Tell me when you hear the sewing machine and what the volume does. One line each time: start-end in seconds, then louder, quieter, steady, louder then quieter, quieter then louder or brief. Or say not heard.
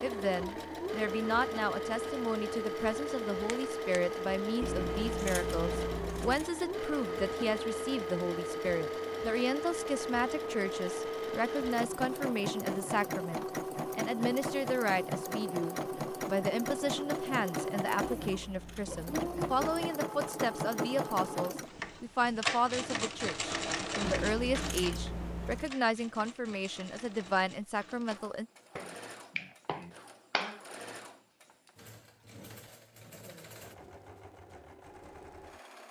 0.0-35.8 quieter.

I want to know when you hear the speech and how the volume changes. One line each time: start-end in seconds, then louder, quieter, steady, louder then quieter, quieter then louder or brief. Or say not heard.
0.0-28.4 steady.